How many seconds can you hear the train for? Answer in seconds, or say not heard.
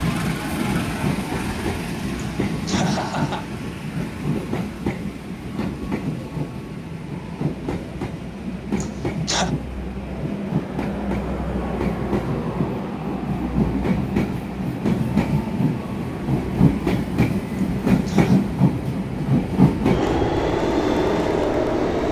22 s.